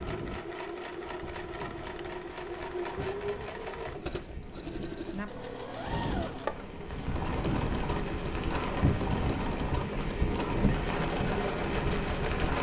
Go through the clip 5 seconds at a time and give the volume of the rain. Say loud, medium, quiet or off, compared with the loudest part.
quiet, loud, loud.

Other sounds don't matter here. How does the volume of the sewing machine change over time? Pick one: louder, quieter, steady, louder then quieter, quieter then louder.
steady.